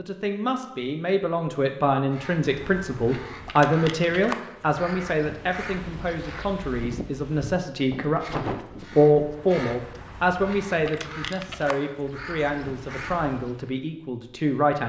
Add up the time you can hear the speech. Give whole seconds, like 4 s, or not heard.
15 s.